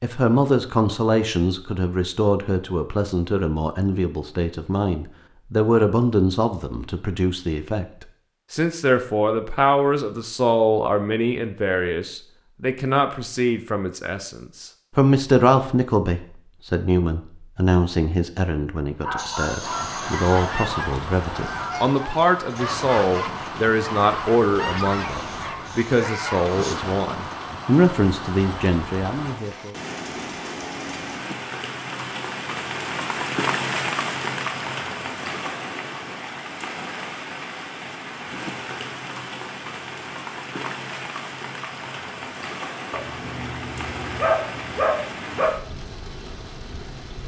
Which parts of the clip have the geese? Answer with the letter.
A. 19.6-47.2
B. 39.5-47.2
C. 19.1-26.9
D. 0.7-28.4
C.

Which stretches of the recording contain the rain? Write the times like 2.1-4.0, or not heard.
19.6-47.2.